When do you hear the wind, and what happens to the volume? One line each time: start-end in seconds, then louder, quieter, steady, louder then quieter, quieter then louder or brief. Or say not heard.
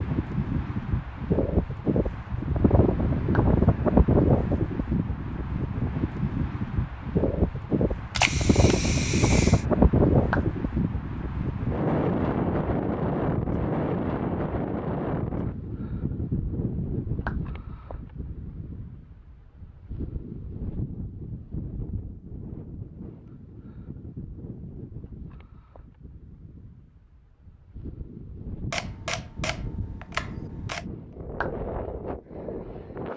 0.0-33.1 quieter.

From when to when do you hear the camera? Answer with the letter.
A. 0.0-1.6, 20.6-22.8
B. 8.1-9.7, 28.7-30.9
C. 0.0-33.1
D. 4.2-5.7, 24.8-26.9
B.